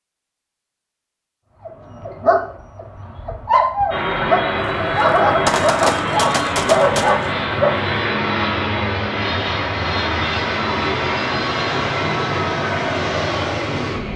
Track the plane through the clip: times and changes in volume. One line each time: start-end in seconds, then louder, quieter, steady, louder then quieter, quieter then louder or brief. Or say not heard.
3.9-14.1 steady.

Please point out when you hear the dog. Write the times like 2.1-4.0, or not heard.
1.6-7.8.